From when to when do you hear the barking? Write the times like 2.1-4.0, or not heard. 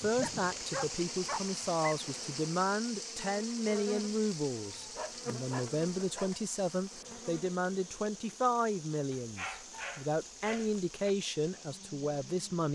0.2-1.9, 4.5-6.5, 9.1-11.1.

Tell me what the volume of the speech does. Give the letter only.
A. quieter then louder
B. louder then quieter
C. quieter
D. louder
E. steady
E.